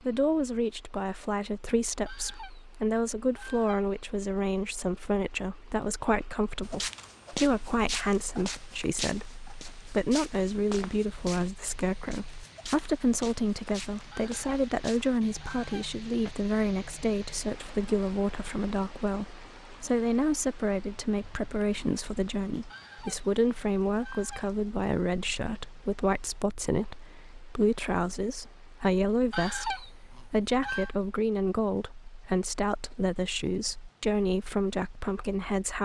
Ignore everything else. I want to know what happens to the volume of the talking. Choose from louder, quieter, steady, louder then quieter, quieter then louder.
steady.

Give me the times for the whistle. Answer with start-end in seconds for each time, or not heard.
not heard.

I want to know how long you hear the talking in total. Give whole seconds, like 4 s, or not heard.
36 s.